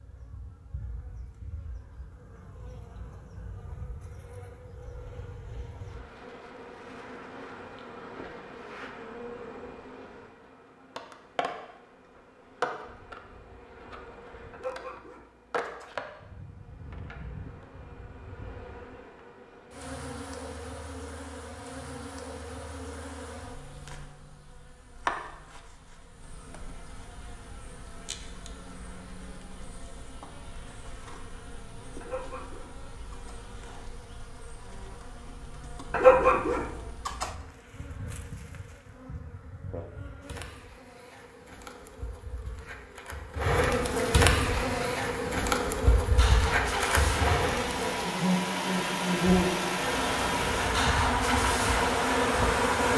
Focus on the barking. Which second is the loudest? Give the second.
36 s.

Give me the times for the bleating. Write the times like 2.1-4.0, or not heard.
not heard.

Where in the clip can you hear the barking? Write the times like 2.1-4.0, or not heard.
14.5-15.9, 32.0-33.4, 35.9-37.3.